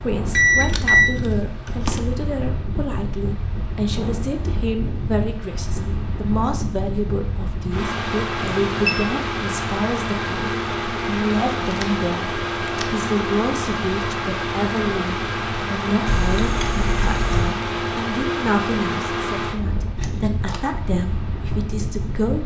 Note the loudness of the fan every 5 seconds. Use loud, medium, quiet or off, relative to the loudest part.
medium, loud, loud, loud, medium.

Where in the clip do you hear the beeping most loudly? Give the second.
1 s.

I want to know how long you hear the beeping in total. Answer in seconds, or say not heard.
3 s.